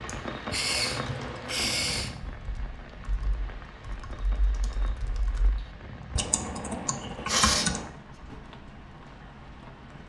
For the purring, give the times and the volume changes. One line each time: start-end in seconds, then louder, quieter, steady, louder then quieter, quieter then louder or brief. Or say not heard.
not heard.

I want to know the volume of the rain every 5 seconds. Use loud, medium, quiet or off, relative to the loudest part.
loud, medium.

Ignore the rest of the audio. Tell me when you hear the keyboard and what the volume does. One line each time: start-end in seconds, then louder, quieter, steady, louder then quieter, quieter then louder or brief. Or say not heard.
0.8-8.4 quieter then louder.